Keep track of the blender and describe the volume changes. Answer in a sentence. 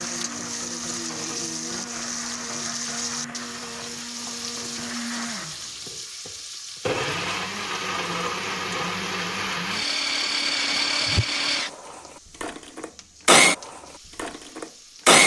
The loudness of the blender goes up.